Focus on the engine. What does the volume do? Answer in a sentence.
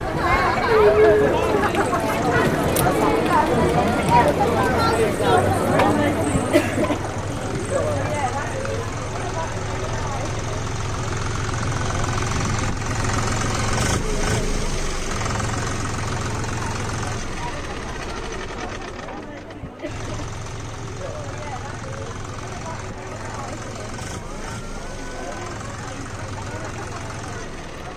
The volume of the engine goes up, then down.